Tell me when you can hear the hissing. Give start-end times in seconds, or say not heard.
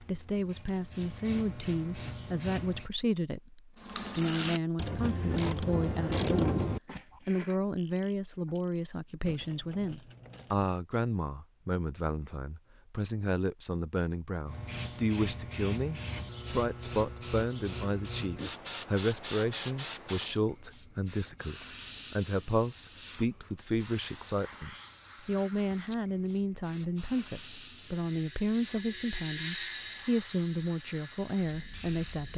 0.0-2.9, 14.4-32.3.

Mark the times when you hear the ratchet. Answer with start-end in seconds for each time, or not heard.
3.8-10.8, 27.8-32.3.